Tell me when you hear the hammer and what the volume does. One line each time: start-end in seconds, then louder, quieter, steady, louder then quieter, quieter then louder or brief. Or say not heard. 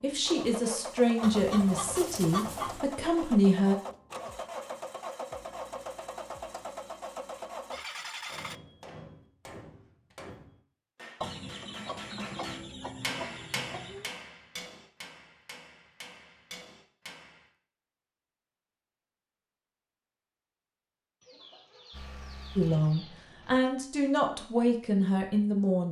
8.2-17.5 louder then quieter.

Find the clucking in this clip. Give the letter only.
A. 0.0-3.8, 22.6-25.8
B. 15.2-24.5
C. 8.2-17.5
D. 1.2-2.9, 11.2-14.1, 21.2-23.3
D.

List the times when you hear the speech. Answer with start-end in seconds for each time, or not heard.
0.0-3.8, 22.6-25.8.